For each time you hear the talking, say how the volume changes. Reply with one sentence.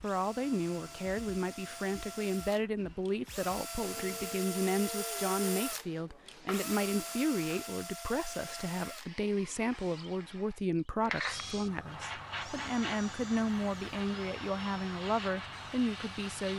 You can hear the talking from 0.0 to 16.5 s, at a steady volume.